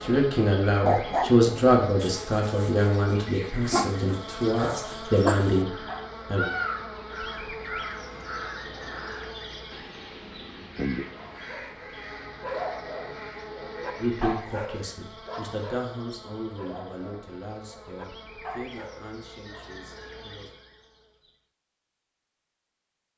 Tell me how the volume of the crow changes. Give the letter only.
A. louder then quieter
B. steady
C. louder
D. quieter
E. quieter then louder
D.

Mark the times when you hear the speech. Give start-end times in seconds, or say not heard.
0.0-6.5, 13.9-20.6.